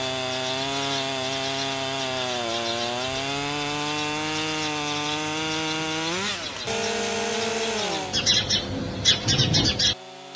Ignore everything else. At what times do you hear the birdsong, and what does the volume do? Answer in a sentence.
You can hear the birdsong from 0.1 to 10.3 s, getting louder.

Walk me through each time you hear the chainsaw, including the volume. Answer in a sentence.
The chainsaw can be heard from 0.0 to 10.3 s, getting quieter.